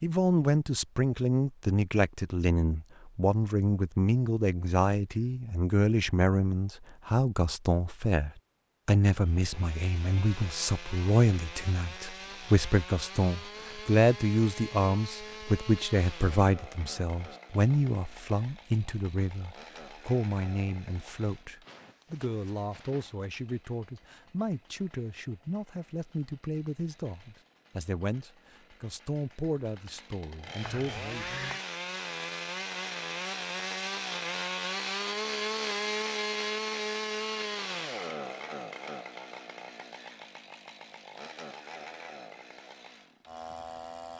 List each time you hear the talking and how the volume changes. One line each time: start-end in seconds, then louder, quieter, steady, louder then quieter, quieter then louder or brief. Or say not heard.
0.0-31.4 quieter.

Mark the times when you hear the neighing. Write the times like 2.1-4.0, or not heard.
30.6-31.6.